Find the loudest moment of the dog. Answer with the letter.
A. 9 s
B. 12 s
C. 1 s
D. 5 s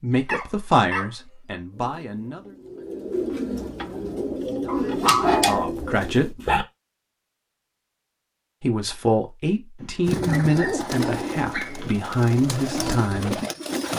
D.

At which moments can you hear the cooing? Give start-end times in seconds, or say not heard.
1.7-6.3, 10.1-13.9.